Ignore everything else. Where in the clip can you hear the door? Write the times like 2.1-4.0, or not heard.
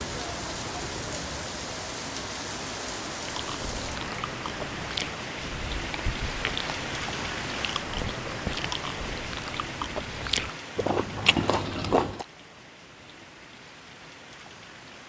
not heard.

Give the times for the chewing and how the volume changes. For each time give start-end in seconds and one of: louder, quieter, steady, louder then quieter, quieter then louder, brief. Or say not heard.
3.2-12.2 louder.